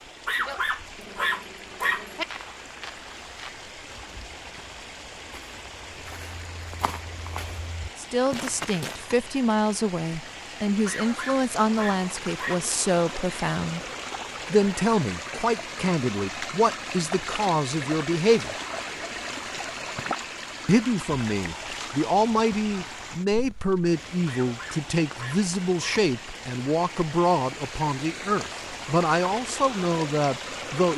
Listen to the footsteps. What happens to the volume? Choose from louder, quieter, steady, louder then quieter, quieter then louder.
quieter then louder.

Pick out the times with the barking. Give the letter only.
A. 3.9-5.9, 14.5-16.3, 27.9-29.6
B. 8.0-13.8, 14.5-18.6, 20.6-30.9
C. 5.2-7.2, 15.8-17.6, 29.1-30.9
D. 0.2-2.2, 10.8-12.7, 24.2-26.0
D.